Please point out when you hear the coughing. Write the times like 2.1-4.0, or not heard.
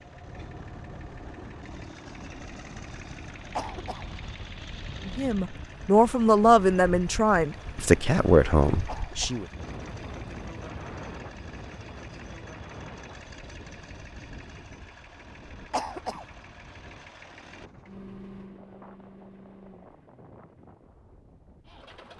3.5-4.0, 8.8-9.4, 15.7-16.2.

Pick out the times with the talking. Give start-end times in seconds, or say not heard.
5.0-9.4.